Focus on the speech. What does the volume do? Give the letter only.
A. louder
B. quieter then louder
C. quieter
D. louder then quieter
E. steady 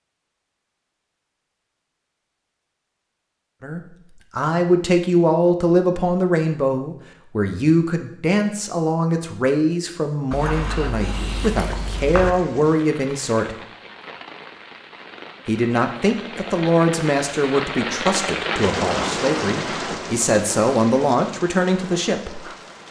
E.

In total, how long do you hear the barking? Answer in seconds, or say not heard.
2 s.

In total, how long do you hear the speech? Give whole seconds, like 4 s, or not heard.
17 s.